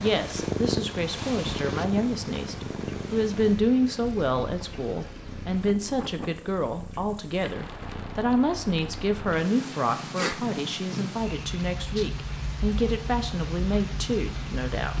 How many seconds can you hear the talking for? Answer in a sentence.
The talking can be heard for 15 seconds in total.